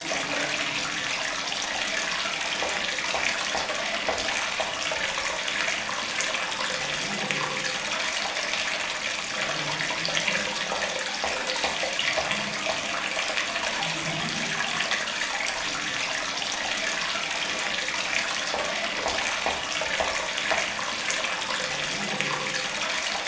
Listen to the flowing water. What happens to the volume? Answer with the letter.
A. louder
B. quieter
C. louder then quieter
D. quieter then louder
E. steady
E.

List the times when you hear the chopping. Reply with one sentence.
The chopping can be heard from 2.6 to 4.7 s, from 10.7 to 13.2 s and from 18.5 to 20.6 s.